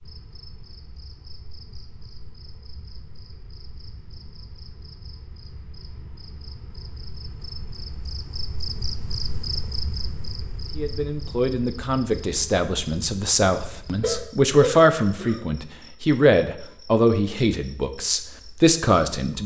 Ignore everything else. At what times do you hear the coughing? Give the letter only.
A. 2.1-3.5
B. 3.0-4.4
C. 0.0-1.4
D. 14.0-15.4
D.